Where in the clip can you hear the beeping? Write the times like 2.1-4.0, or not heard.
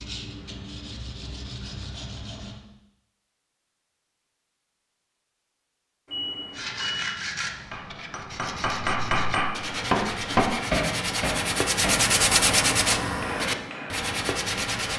6.0-7.0.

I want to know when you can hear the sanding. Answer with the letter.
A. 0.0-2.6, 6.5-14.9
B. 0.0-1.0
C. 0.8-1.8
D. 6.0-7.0
A.